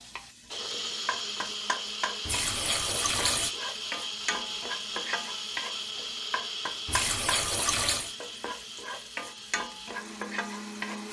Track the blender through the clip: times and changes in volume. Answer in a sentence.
The blender can be heard from 0.0 to 11.0 s, getting quieter.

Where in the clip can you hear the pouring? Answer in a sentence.
You can hear the pouring from 2.2 to 3.5 s and from 6.8 to 8.2 s.